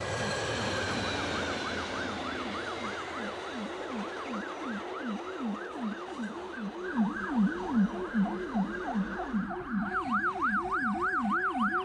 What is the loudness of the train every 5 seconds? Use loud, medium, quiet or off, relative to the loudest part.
loud, medium, medium.